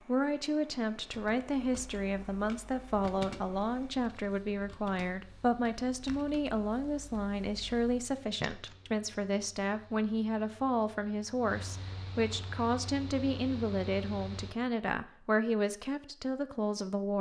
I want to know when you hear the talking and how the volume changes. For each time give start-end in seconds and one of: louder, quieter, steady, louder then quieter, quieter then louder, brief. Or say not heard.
0.1-17.1 steady.